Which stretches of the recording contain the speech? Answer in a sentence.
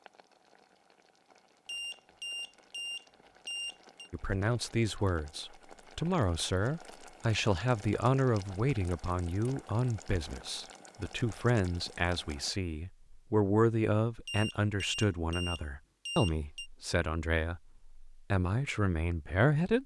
You can hear the speech from 4.1 to 19.8 s.